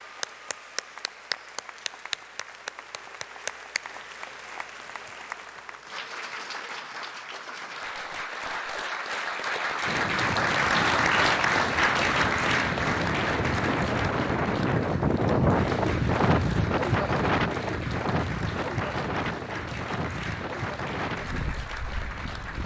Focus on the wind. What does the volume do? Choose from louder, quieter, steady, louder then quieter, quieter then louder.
louder then quieter.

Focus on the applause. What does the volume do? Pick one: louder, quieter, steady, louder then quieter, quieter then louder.
louder then quieter.